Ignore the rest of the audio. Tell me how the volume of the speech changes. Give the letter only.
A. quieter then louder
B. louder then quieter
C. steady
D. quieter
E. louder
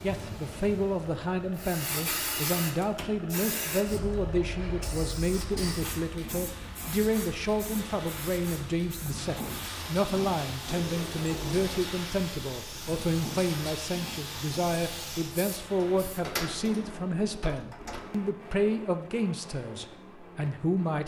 C.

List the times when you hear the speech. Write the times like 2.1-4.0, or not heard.
0.0-21.0.